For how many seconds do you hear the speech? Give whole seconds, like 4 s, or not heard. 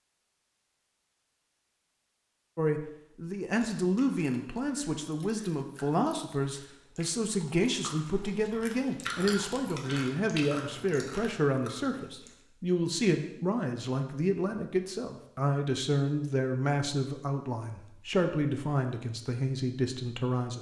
18 s.